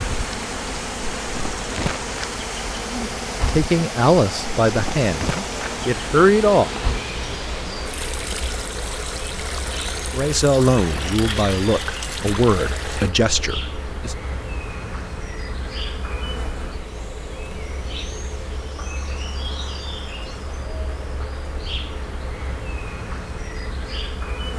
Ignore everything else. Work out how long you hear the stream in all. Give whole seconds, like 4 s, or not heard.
13 s.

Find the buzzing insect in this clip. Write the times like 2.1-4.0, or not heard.
0.0-24.5.